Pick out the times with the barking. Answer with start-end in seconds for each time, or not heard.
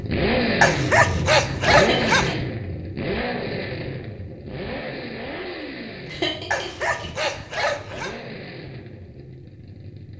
0.6-2.4, 6.5-8.2.